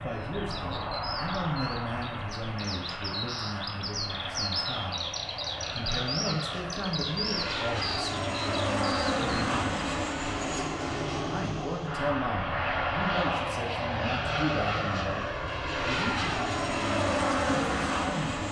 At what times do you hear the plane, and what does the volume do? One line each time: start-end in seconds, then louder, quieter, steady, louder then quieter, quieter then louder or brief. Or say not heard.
0.0-18.4 louder.